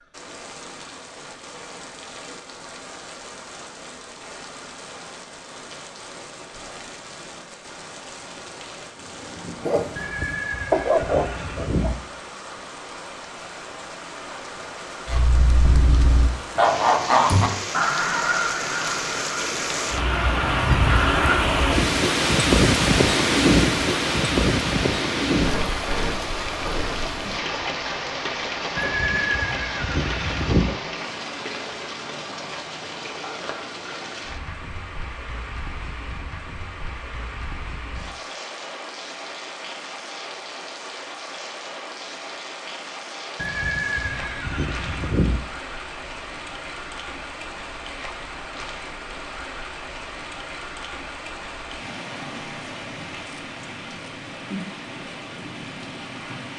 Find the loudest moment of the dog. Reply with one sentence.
The loudest moment of the dog is at 11 seconds.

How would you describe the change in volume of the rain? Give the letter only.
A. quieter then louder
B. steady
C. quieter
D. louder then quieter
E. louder
D.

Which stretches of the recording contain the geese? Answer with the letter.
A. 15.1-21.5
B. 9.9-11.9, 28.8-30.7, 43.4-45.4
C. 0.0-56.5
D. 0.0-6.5
A.